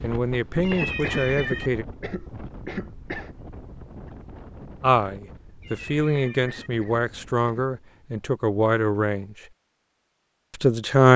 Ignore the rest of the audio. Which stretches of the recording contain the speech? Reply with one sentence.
You can hear the speech from 0.0 to 1.9 s, from 4.8 to 9.3 s and from 10.5 to 11.1 s.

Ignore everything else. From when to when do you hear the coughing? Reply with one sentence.
The coughing can be heard from 0.7 to 3.3 s and from 6.3 to 7.7 s.